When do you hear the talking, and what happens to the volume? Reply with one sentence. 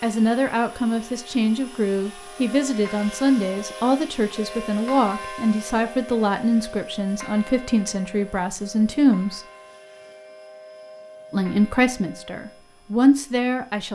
The talking can be heard from 0.0 to 9.4 s, at a steady volume; and briefly from 11.3 to 13.9 s.